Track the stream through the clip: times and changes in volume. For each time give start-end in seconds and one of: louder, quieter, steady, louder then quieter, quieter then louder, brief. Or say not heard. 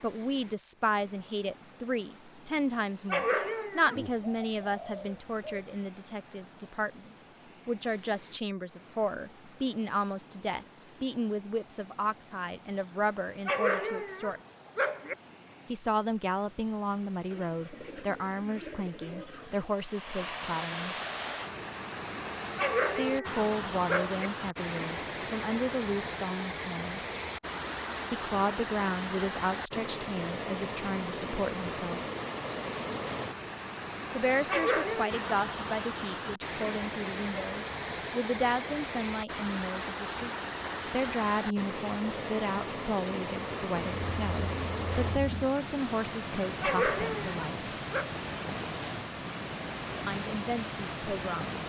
0.0-51.6 louder.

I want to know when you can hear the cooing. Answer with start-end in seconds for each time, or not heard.
4.0-5.7, 17.3-19.8, 43.7-45.5.